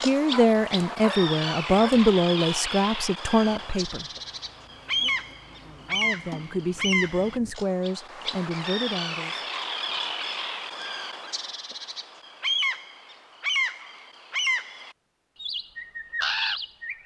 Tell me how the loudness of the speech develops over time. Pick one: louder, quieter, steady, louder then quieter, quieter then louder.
quieter.